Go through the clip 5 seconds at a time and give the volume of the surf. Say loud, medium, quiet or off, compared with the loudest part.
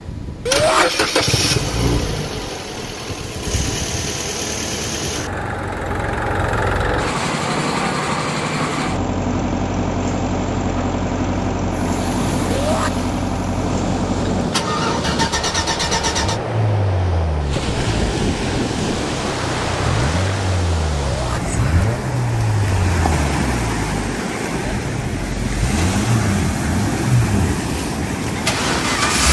quiet, medium, loud, loud, loud, loud.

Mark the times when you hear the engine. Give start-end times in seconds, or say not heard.
0.0-29.2.